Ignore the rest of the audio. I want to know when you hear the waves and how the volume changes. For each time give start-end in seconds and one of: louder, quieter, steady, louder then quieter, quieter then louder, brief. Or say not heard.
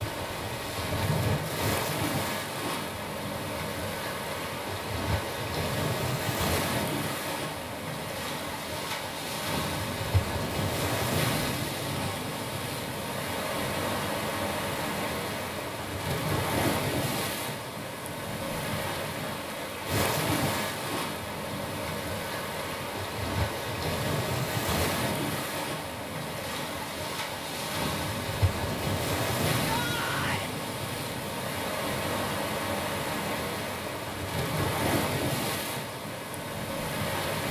0.0-37.4 steady.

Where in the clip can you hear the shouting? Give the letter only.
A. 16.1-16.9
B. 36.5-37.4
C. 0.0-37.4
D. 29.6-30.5
D.